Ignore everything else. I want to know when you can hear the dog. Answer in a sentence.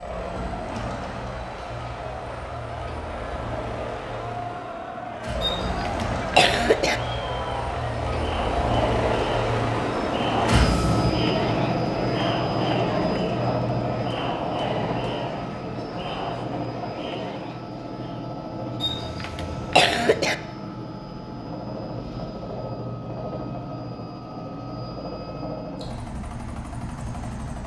You can't hear the dog here.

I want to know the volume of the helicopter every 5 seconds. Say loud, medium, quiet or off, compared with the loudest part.
medium, loud, loud, medium, medium, medium.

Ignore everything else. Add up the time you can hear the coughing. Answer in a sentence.
The coughing can be heard for 3 seconds in total.